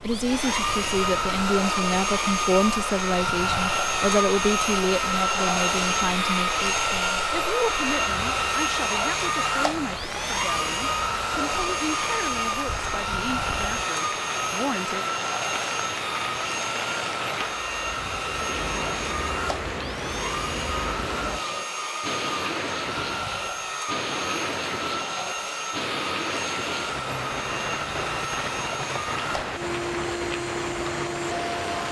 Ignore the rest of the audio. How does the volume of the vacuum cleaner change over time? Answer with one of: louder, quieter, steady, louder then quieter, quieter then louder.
quieter.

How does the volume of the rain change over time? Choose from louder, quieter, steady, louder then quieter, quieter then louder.
louder.